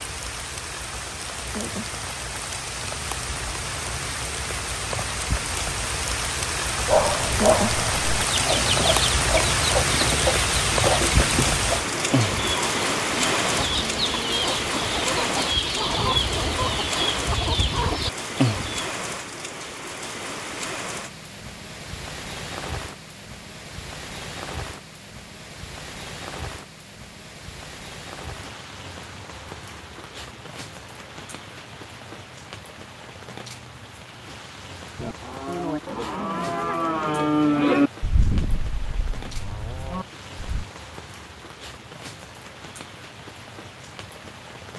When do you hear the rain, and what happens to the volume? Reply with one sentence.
You can hear the rain from 0.0 to 44.7 s, getting quieter.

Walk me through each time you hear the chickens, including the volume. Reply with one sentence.
You can hear the chickens from 8.2 to 18.9 s, at a steady volume.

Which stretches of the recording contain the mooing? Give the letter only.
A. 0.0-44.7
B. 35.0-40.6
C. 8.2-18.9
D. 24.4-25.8
B.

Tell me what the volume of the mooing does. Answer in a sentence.
The loudness of the mooing goes up, then down.